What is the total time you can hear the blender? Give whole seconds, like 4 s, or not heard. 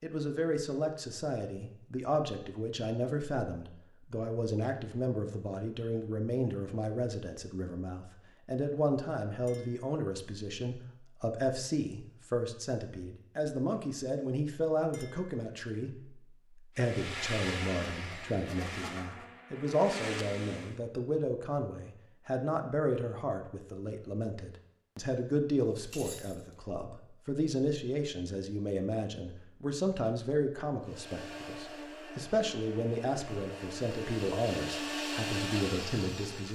10 s.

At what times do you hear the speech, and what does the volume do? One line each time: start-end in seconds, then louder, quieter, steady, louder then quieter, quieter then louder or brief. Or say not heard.
0.0-36.4 steady.